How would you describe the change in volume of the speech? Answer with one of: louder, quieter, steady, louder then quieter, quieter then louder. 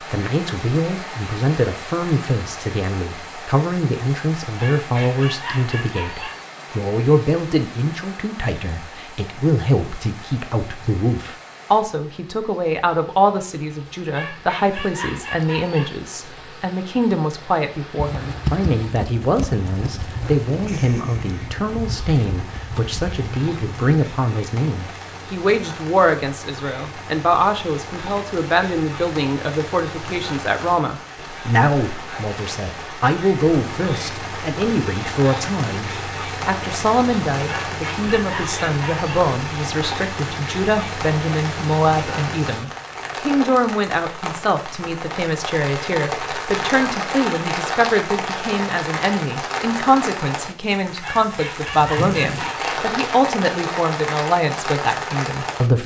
steady.